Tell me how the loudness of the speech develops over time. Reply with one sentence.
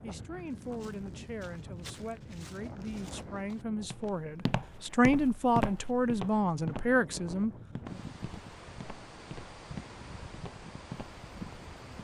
The loudness of the speech goes up.